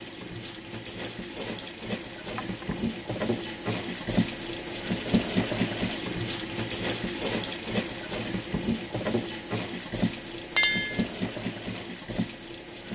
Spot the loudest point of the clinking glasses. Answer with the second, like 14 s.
11 s.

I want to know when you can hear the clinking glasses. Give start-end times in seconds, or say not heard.
2.4-2.8, 10.6-11.1.